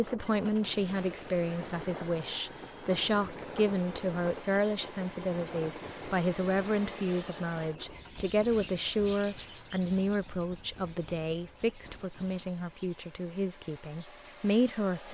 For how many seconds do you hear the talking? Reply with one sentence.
You can hear the talking for 15 seconds altogether.